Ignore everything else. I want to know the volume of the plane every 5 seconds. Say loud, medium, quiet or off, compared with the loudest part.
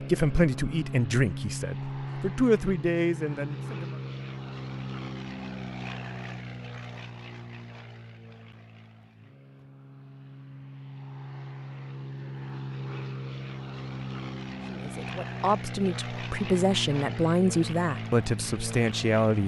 loud, medium, loud, loud.